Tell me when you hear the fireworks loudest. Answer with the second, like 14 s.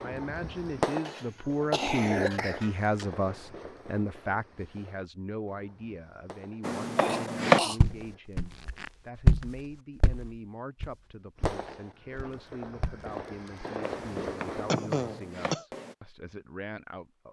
1 s.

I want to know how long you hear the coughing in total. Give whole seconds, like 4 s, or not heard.
4 s.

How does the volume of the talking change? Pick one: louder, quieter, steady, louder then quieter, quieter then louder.
quieter.